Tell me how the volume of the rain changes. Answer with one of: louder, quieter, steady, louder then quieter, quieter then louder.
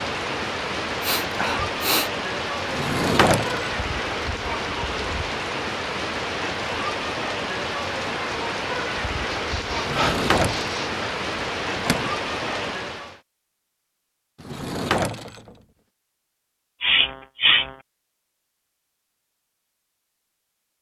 steady.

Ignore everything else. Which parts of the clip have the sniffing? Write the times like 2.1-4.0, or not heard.
1.0-2.1, 9.3-11.2, 16.8-17.8.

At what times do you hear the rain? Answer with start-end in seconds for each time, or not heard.
0.0-13.2.